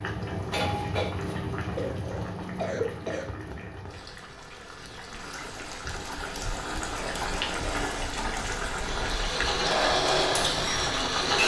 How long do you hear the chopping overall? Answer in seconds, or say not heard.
not heard.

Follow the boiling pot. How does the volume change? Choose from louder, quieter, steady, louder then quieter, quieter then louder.
quieter then louder.